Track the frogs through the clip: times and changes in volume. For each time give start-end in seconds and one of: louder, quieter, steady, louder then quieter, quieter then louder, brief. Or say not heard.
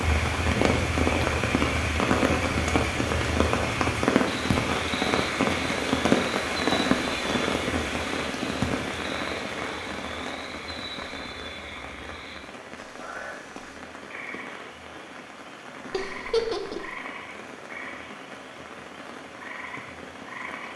0.0-20.7 quieter.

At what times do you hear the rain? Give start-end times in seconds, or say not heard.
0.0-20.7.